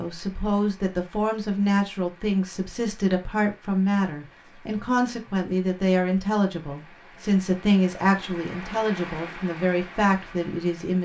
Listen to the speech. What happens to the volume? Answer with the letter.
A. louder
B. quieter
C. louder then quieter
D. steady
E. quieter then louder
D.